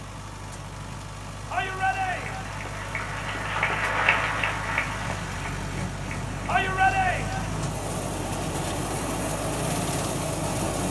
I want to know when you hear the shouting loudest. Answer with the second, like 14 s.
7 s.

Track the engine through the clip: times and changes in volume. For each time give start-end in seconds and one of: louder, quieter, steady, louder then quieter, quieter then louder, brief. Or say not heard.
0.0-10.8 louder.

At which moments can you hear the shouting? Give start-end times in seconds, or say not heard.
1.5-2.5, 6.5-7.5.